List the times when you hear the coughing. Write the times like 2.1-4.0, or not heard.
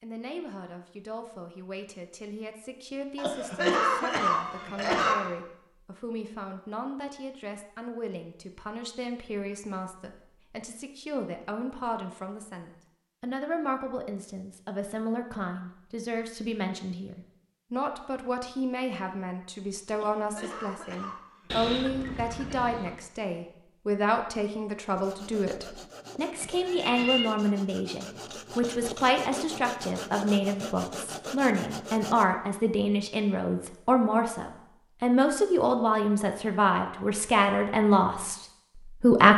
3.1-5.2, 19.9-21.7.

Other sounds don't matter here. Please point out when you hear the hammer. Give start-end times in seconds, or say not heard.
not heard.